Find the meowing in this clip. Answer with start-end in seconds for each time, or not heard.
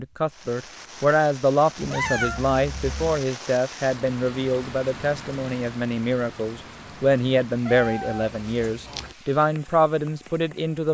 1.8-3.2, 7.7-9.2.